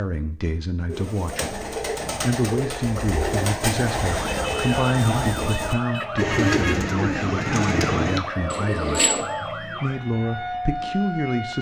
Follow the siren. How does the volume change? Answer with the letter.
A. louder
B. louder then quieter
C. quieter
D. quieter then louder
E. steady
E.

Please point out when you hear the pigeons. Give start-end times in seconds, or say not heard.
0.8-9.3.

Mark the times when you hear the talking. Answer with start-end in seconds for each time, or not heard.
0.0-9.1, 9.8-11.5.